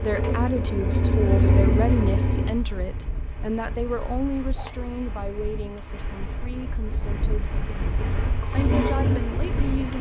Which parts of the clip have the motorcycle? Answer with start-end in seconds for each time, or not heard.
0.0-2.5, 8.0-9.9.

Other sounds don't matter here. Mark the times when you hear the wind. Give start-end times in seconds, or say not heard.
2.1-9.9.